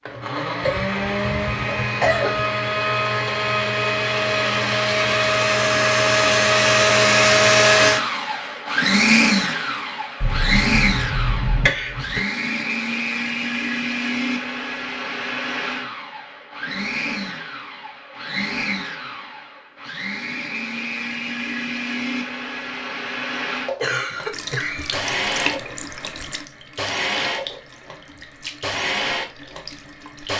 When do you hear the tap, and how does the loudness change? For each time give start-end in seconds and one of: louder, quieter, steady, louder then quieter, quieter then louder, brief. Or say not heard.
24.2-30.3 quieter.